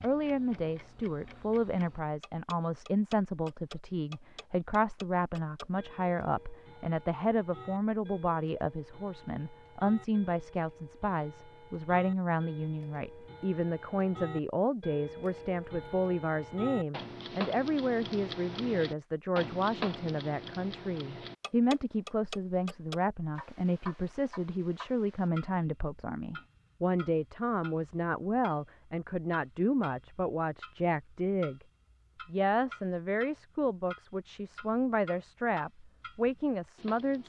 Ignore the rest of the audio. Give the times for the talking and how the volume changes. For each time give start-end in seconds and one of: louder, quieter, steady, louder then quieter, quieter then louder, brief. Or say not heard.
0.0-31.6 steady
32.2-37.2 steady.